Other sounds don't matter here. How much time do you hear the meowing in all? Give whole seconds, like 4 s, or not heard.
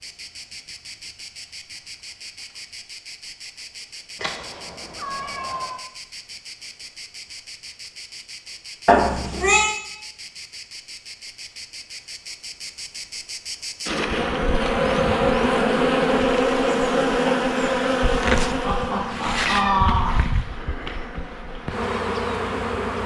4 s.